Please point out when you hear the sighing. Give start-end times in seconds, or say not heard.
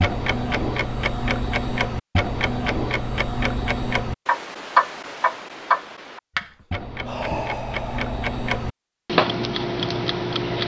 6.4-8.3.